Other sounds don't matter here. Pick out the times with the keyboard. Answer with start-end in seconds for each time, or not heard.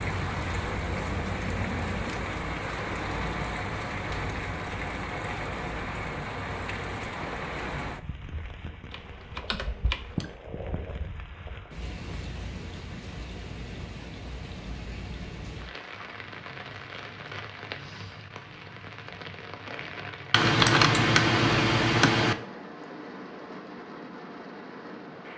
8.9-10.3, 20.3-22.4.